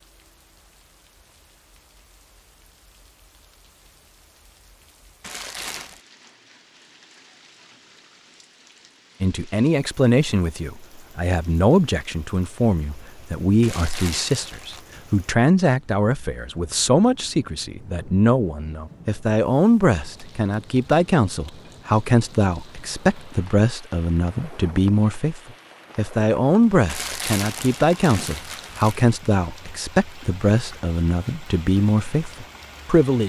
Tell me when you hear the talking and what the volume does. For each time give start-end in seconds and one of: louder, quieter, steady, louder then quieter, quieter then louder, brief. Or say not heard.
9.2-33.2 steady.